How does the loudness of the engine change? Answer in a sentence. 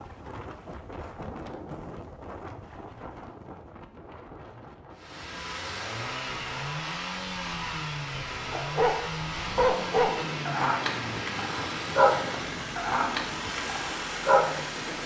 The volume of the engine stays about the same.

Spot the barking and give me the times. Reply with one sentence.
You can hear the barking from 8.5 to 8.9 s and from 9.6 to 14.6 s.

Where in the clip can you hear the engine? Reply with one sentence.
The engine can be heard from 5.0 to 15.0 s.